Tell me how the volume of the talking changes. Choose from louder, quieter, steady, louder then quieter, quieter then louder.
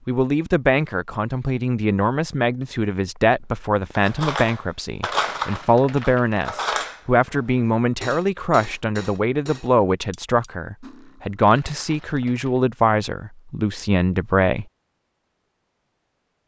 steady.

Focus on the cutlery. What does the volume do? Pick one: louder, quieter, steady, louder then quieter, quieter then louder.
quieter.